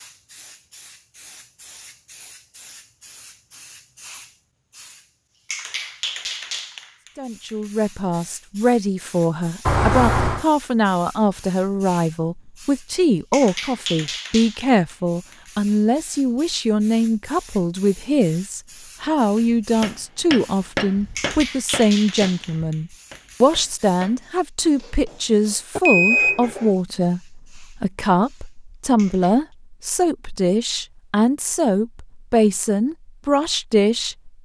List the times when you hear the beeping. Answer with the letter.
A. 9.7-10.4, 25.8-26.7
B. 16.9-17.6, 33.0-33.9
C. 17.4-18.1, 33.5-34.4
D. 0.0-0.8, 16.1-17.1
A.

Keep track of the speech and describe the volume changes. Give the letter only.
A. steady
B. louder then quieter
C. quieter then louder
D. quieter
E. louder
A.